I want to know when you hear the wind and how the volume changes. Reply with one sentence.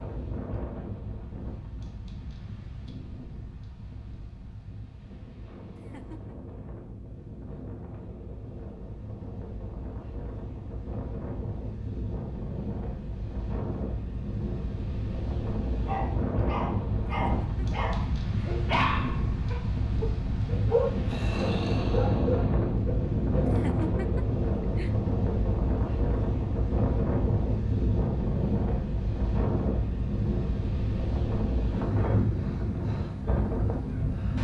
You can hear the wind from 0.0 to 34.3 s, getting louder.